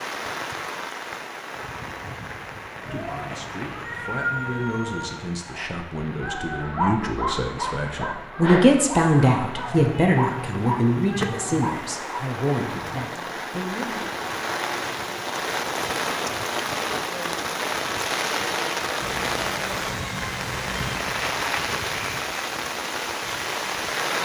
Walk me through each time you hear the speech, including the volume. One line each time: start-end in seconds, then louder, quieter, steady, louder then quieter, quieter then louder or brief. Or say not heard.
2.8-14.1 louder then quieter.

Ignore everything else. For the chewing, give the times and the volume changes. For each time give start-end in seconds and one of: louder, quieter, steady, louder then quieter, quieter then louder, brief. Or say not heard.
not heard.